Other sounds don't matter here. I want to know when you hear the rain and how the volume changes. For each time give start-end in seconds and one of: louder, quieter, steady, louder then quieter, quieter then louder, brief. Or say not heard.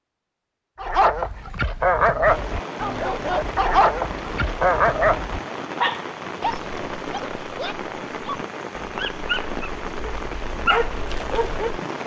2.2-12.0 steady.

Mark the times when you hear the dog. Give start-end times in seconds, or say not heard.
0.8-11.8.